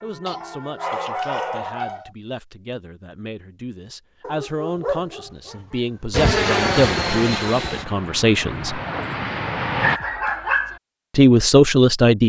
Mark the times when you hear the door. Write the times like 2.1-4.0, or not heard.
not heard.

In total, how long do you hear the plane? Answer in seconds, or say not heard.
4 s.